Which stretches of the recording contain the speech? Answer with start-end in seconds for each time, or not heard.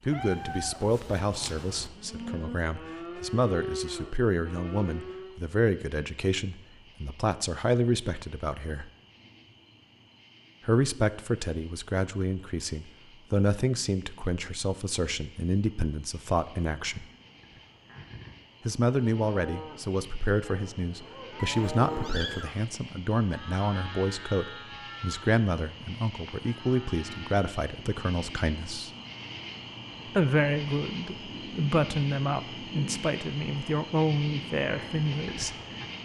0.1-8.9, 10.7-17.1, 18.6-28.9, 30.1-35.5.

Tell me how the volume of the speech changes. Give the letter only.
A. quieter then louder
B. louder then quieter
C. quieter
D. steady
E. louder
D.